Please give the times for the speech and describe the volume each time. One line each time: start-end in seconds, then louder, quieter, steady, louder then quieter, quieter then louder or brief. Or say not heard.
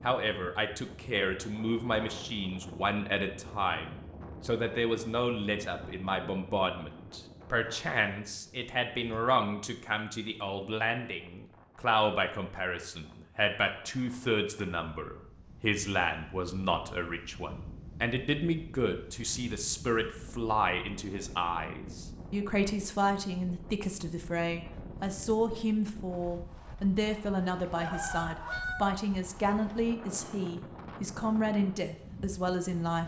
0.0-33.0 steady.